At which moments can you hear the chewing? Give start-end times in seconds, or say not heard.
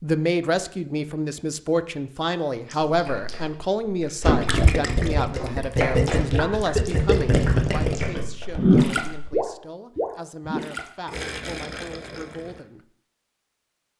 2.6-9.3.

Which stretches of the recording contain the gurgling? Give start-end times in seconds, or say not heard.
4.4-12.6.